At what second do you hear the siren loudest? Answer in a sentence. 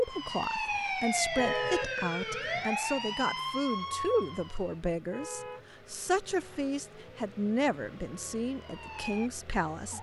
The loudest moment of the siren is at 1 second.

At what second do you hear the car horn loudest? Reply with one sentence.
The loudest moment of the car horn is at 2 seconds.